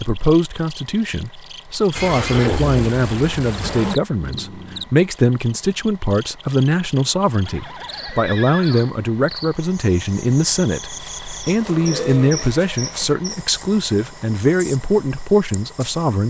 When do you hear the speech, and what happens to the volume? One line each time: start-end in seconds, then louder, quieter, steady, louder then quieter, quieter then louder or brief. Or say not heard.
0.0-16.2 steady.